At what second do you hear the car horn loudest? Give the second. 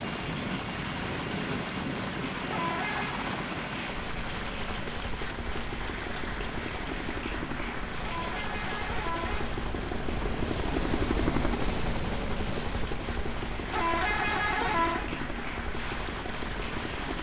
15 s.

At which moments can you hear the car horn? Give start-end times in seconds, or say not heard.
2.5-3.2, 8.0-9.5, 13.7-15.1.